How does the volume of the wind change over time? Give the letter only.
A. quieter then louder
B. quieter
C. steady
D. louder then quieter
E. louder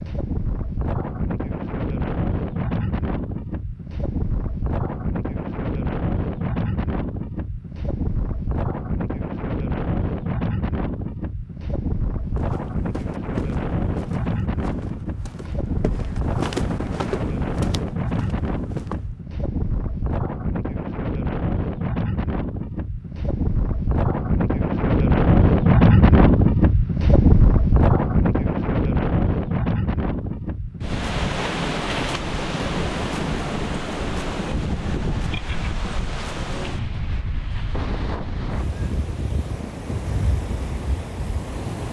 D.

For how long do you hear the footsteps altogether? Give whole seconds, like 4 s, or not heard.
7 s.